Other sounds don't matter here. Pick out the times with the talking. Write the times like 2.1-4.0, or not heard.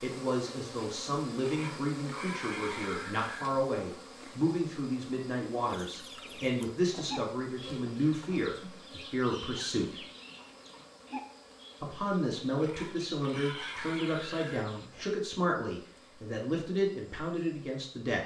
0.0-9.9, 11.8-18.2.